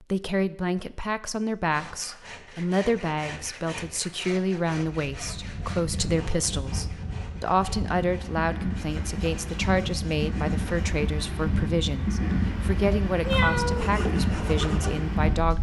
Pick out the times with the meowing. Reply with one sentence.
You can hear the meowing from 13.2 to 14.0 s.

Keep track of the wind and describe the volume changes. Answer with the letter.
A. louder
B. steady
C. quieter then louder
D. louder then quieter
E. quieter
A.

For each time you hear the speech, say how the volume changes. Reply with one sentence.
The speech can be heard from 0.0 to 15.5 s, at a steady volume.